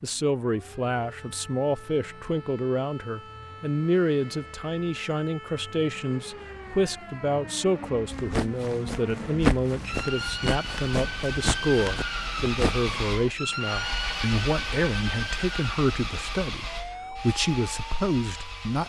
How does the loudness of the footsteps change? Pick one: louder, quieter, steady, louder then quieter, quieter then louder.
louder then quieter.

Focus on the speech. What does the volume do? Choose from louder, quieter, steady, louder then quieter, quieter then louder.
steady.